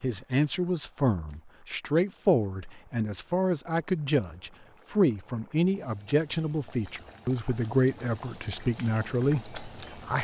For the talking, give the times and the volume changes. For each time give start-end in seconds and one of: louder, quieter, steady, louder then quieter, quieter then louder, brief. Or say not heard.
0.0-10.1 steady.